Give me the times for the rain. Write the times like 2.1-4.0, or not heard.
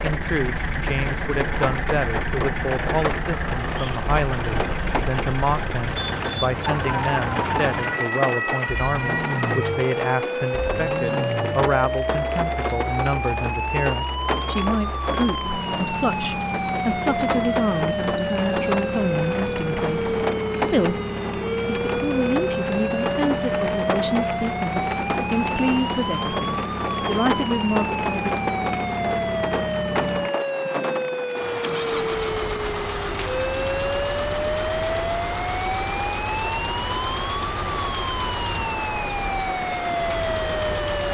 0.0-41.1.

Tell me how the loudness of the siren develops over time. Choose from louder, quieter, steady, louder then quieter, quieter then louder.
steady.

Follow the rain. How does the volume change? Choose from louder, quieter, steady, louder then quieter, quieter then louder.
steady.